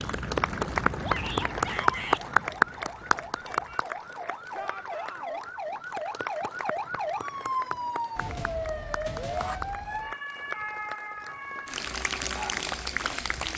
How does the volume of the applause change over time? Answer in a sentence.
The loudness of the applause goes down, then up.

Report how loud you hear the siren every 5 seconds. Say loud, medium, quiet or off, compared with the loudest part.
medium, loud, medium.